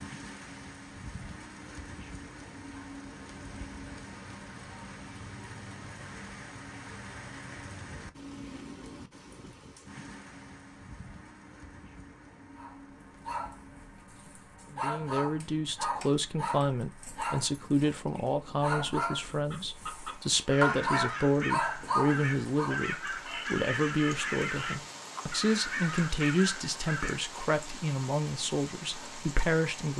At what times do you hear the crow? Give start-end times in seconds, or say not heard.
19.2-27.2.